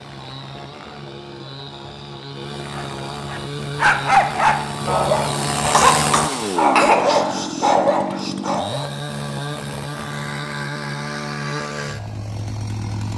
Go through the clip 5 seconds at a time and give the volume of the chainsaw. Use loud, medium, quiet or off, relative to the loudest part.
medium, loud, loud.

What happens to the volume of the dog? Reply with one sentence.
The volume of the dog goes down, then up.